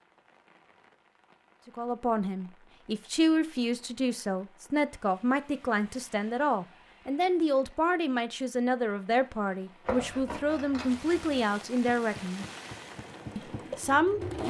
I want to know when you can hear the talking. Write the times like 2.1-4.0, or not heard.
1.6-12.4, 13.3-14.4.